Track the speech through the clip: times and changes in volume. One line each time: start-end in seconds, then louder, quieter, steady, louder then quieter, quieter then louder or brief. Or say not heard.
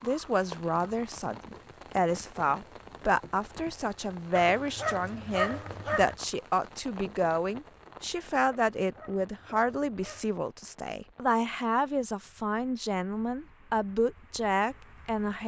0.0-15.4 steady.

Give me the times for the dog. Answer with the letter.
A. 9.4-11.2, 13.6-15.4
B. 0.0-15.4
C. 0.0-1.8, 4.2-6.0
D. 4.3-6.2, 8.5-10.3
D.